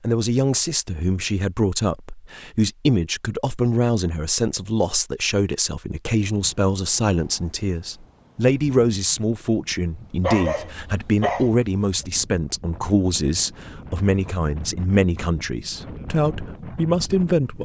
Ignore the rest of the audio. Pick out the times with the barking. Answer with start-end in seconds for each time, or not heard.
10.2-11.6.